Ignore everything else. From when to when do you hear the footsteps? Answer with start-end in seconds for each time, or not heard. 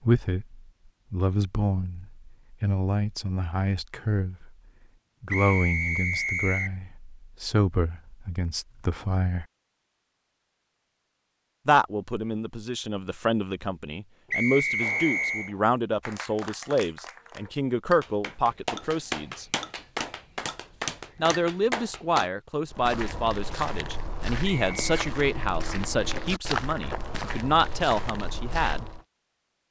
22.7-29.0.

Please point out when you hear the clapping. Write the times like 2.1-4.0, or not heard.
14.8-22.3.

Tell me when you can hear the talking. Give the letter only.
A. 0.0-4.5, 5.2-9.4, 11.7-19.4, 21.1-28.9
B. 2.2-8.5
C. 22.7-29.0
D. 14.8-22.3
A.